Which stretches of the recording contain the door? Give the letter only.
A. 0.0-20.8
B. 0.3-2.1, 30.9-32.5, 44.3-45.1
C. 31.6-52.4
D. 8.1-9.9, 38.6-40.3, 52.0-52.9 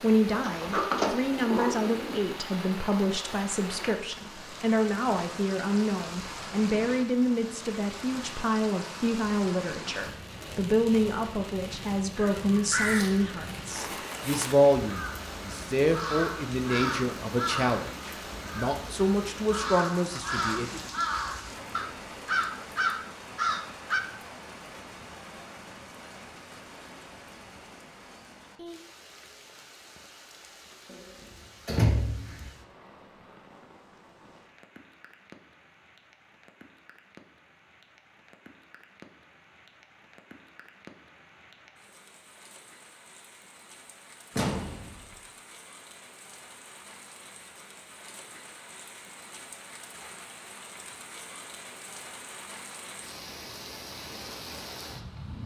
B.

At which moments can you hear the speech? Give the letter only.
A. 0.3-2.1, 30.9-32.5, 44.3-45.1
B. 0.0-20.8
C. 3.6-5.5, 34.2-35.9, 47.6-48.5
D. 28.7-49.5
B.